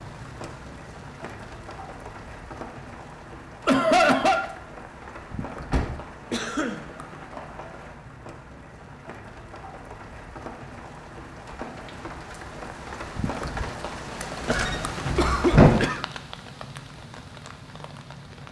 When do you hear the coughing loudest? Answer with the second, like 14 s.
4 s.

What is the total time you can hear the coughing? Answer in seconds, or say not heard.
3 s.